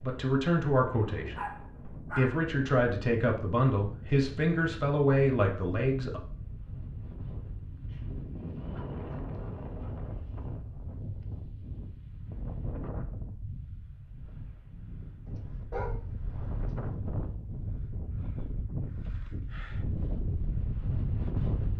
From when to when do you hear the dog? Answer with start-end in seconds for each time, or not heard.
1.3-2.5, 7.8-10.6, 15.2-16.9.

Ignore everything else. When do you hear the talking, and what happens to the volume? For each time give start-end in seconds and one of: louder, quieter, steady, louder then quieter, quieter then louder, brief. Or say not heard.
0.0-6.2 steady.